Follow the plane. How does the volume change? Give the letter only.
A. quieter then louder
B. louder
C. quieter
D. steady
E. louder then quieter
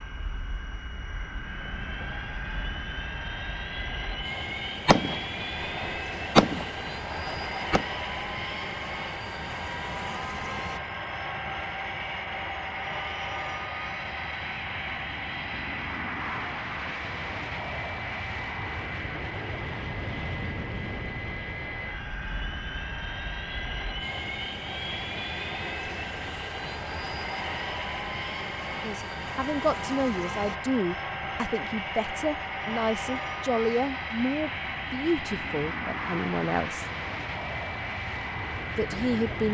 D.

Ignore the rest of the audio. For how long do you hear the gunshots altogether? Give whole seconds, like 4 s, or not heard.
3 s.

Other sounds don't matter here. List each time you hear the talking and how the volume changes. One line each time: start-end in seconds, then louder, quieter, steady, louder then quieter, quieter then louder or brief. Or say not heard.
28.7-36.9 steady
38.8-39.4 brief.